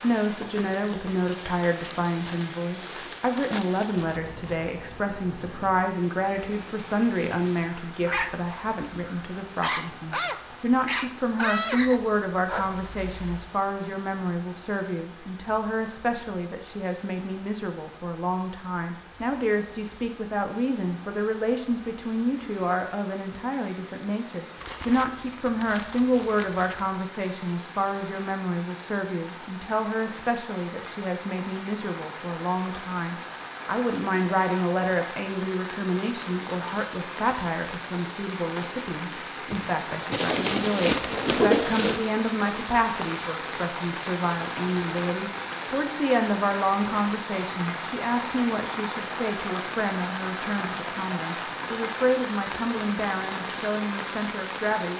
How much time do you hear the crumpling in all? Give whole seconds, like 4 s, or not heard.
7 s.